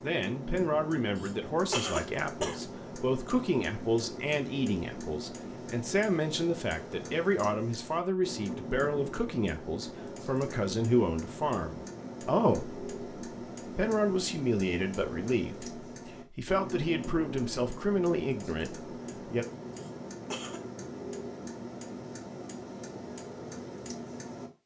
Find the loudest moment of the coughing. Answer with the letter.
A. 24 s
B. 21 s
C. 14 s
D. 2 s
D.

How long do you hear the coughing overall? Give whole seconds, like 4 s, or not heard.
2 s.